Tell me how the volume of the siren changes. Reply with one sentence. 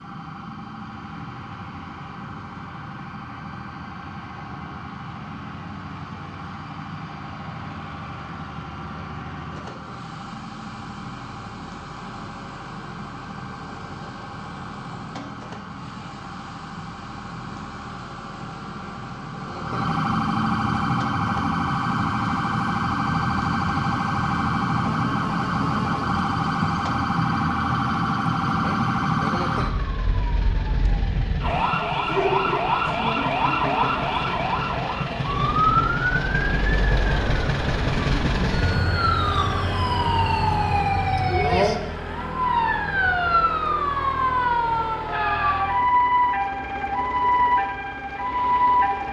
The loudness of the siren goes up.